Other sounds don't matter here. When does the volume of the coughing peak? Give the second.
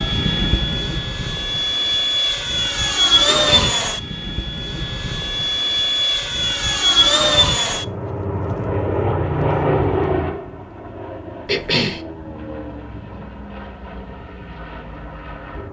12 s.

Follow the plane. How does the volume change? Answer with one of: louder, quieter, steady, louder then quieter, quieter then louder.
quieter.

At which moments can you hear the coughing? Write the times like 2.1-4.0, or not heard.
3.2-3.8, 11.4-12.0.